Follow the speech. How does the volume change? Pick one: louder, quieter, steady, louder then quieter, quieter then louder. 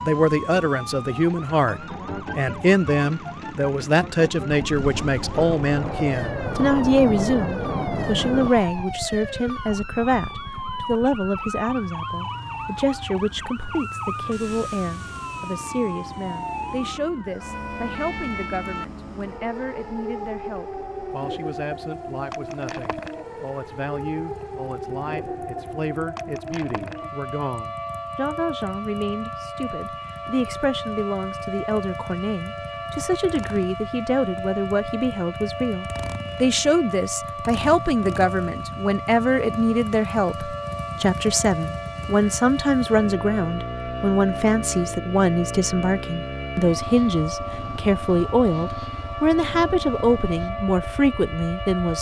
quieter then louder.